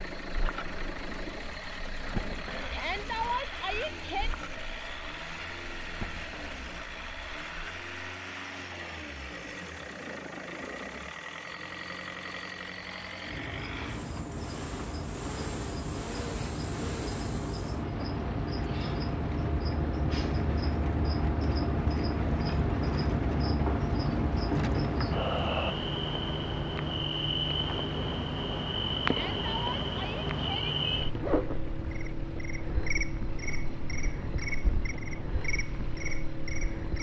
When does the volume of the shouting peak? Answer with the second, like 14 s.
3 s.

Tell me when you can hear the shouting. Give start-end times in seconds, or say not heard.
2.7-4.3, 29.1-30.8.